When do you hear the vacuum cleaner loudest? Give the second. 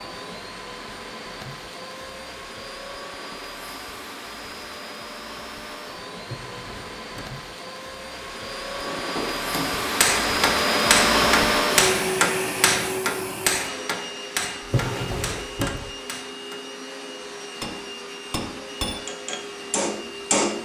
11 s.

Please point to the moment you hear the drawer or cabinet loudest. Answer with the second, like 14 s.
15 s.